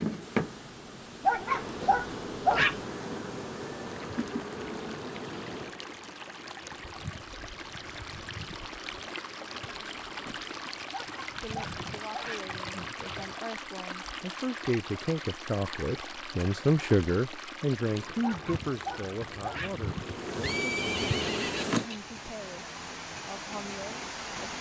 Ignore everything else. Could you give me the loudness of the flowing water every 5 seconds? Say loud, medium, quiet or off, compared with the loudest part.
medium, loud, loud, loud, loud.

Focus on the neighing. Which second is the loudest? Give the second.
21 s.